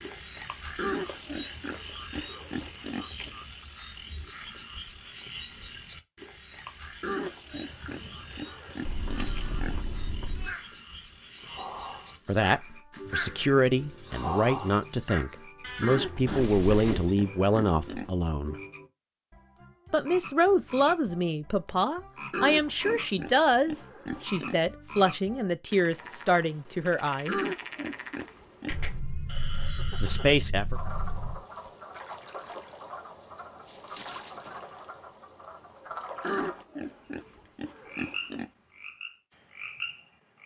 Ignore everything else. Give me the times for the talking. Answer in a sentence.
You can hear the talking from 12.2 to 18.6 s, from 19.9 to 27.4 s and from 30.0 to 30.8 s.